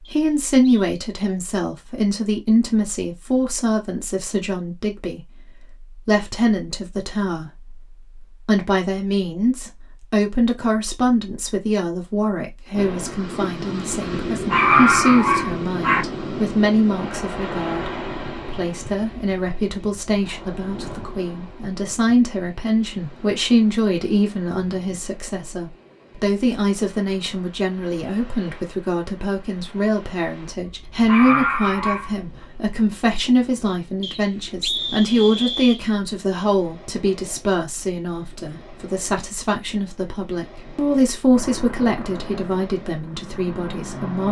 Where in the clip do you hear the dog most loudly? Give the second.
15 s.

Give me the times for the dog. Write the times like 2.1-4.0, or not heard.
14.3-16.1, 30.6-32.1.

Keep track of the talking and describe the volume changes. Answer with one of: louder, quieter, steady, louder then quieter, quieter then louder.
steady.